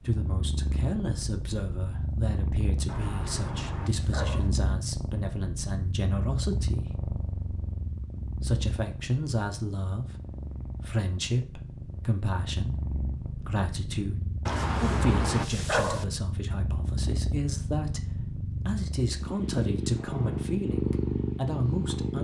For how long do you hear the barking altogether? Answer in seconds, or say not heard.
3 s.